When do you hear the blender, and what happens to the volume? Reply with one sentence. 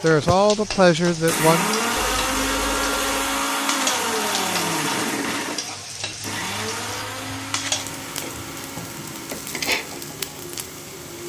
You can hear the blender from 0.0 to 11.2 s, getting quieter.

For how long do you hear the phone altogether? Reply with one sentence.
The phone can be heard for 3 seconds in total.